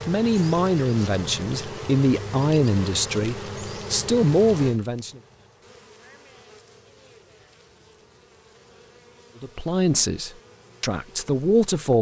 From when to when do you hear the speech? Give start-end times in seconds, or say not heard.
0.1-5.2, 9.4-11.9.